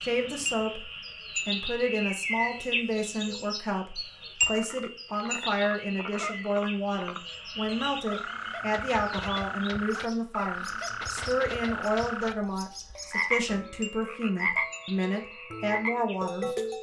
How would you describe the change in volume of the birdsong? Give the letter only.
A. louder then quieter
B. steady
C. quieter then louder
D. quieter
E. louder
D.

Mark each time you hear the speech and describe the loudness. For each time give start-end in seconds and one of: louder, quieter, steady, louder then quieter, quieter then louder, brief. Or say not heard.
0.0-0.8 brief
1.4-16.5 steady.